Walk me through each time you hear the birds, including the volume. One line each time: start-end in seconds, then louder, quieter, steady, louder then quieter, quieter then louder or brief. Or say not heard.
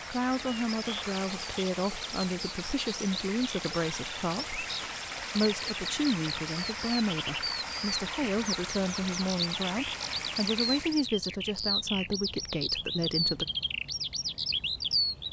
0.0-15.2 louder.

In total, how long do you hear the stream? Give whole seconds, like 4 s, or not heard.
11 s.